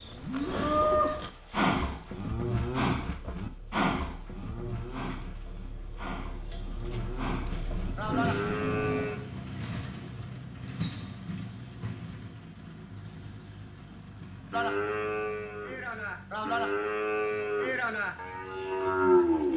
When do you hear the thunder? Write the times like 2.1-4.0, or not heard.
7.5-9.1.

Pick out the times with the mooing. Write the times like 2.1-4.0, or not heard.
0.0-9.2, 14.5-19.5.